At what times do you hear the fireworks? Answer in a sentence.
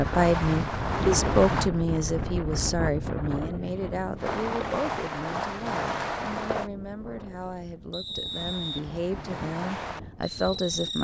The fireworks can be heard from 0.0 to 1.7 s, from 4.2 to 6.7 s and from 8.2 to 10.9 s.